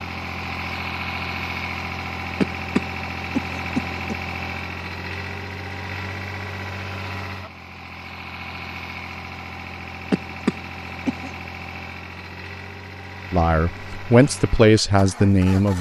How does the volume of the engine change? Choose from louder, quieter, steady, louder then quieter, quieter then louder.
quieter.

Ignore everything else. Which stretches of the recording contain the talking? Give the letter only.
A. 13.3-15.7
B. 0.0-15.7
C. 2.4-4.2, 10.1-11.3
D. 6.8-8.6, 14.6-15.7
A.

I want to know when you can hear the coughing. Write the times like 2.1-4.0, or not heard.
2.4-4.2, 10.1-11.3.